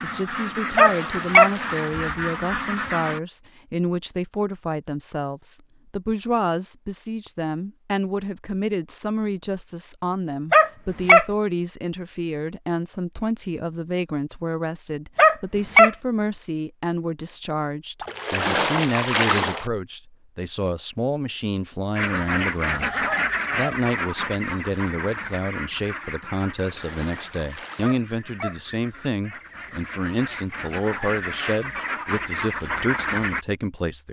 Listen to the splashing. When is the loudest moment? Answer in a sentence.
The volume of the splashing peaks at 19 seconds.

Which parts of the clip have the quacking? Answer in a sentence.
The quacking can be heard from 0.0 to 3.2 s and from 21.9 to 33.5 s.